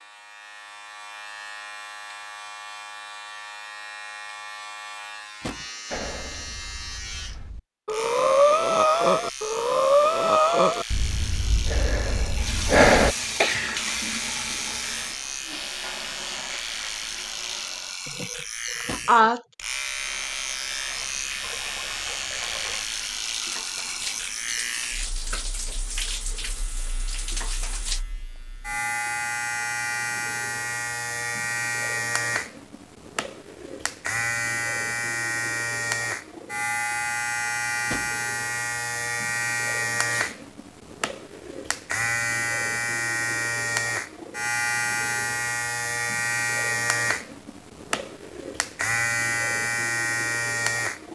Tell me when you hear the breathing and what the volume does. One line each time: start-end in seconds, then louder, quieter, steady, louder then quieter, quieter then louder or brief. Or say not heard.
5.9-13.2 louder then quieter.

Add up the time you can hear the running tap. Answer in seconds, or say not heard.
14 s.